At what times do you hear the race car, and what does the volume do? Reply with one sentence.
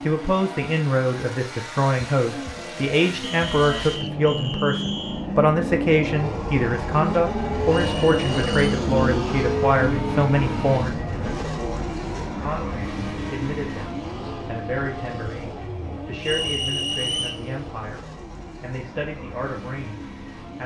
The race car can be heard from 0.0 to 20.6 s, getting louder then quieter.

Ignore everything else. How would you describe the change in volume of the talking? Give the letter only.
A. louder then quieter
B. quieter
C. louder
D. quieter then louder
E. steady
B.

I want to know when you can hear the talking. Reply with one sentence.
The talking can be heard from 0.1 to 20.6 s.